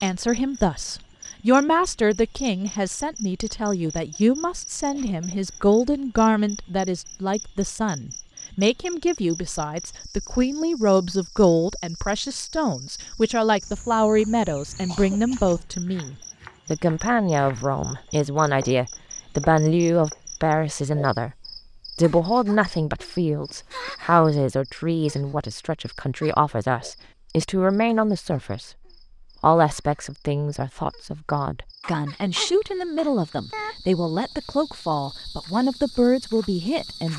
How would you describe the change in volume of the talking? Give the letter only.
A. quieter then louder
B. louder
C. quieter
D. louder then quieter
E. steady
E.